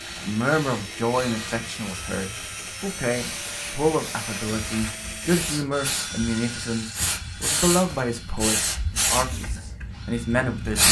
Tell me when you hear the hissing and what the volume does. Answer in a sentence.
The hissing can be heard from 0.0 to 10.8 s, getting louder.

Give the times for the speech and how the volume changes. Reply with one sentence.
The speech can be heard from 0.2 to 10.8 s, at a steady volume.